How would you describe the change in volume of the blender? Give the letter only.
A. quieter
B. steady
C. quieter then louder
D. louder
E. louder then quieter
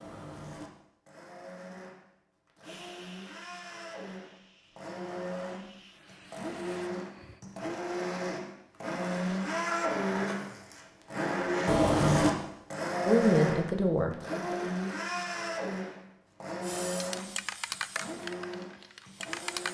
E.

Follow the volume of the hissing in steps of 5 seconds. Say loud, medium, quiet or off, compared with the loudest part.
quiet, quiet, off, loud.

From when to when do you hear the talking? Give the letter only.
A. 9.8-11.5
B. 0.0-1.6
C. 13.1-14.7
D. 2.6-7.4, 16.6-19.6
C.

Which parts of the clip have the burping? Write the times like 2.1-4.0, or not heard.
not heard.